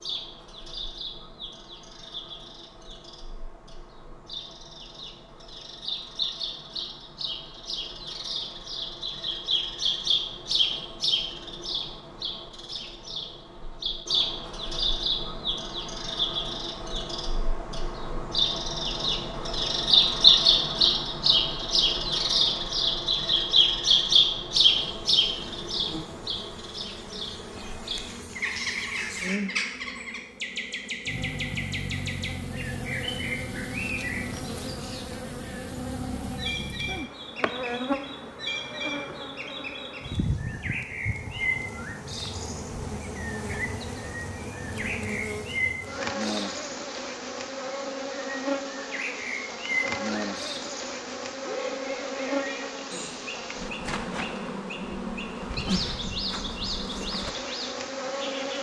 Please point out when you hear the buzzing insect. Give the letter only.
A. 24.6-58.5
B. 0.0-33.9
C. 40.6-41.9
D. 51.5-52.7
A.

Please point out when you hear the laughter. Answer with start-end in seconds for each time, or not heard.
51.5-52.7.